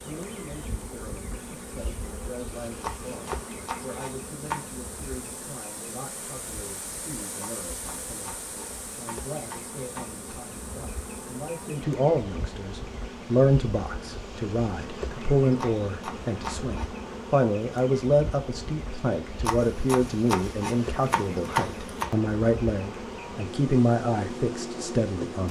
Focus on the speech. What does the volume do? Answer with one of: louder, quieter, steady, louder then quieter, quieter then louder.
louder.